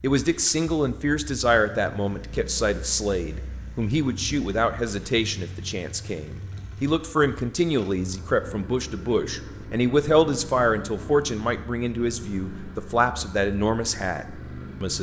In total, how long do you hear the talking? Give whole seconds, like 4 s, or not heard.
15 s.